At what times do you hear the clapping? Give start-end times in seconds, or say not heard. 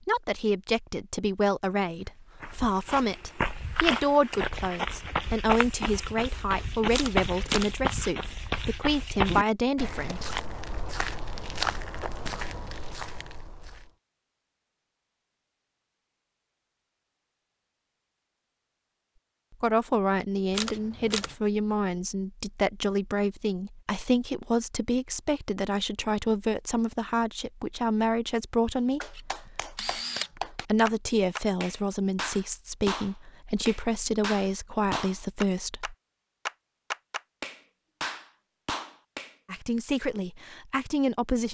29.0-39.4.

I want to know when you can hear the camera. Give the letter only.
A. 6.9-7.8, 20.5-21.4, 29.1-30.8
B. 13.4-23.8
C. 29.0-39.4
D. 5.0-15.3
A.